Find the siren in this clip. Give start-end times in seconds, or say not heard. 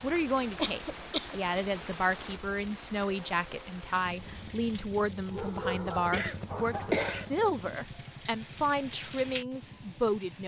not heard.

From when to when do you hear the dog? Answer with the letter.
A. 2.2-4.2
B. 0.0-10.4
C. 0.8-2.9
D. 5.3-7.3
D.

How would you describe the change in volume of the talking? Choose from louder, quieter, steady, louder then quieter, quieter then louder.
steady.